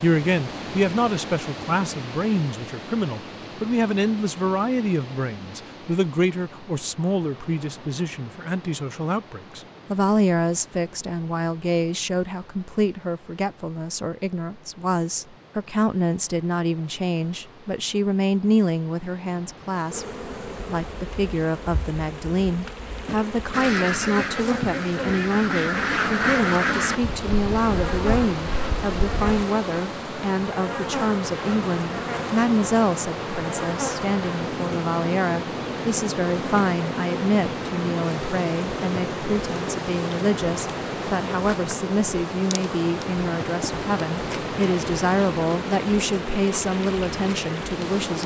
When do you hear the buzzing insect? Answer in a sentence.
You can hear the buzzing insect from 19.9 to 48.2 s.